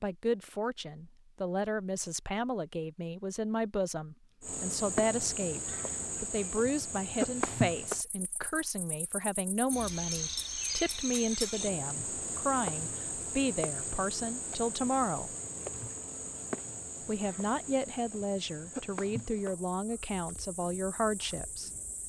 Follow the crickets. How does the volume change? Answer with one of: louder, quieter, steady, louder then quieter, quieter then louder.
quieter.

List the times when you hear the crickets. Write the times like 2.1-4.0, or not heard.
4.4-22.0.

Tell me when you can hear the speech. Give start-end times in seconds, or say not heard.
0.0-15.3, 17.1-21.7.